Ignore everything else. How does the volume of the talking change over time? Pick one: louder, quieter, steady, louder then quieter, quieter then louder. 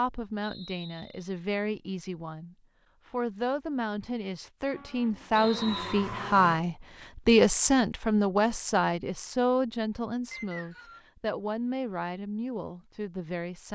louder then quieter.